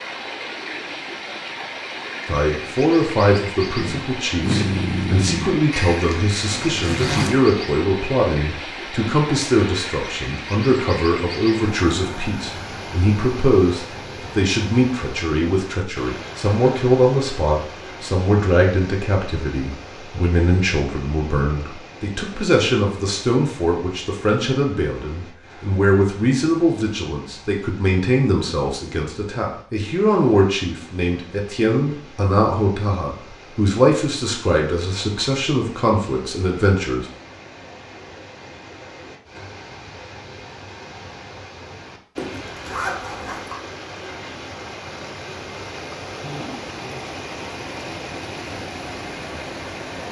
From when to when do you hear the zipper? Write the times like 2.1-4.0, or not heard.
5.7-7.4, 42.1-43.5.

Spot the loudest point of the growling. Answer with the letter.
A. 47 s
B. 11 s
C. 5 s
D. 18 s
C.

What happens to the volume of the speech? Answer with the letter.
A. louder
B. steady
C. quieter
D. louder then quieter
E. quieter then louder
B.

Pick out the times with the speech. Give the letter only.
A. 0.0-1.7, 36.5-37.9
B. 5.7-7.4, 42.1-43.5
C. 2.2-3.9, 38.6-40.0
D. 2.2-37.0
D.